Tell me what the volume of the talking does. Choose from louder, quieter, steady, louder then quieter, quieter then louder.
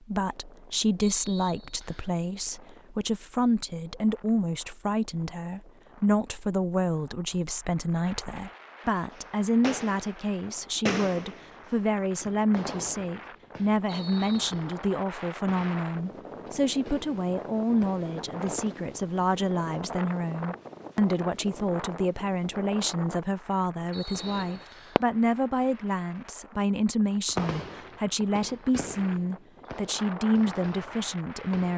steady.